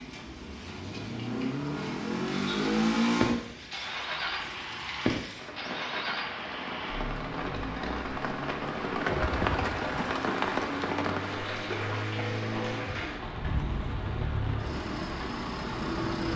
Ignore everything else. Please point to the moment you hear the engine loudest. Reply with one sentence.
The volume of the engine peaks at 3 seconds.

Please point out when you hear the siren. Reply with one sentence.
You can't hear the siren here.